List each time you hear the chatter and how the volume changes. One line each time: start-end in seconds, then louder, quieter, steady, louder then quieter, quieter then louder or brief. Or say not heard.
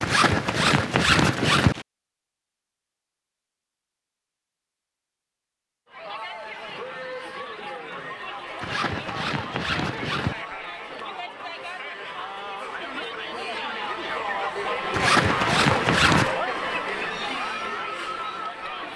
5.8-18.9 louder.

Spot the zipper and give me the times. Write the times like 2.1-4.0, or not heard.
0.0-1.9, 8.6-10.4, 14.9-16.4.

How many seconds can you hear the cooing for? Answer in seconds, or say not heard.
not heard.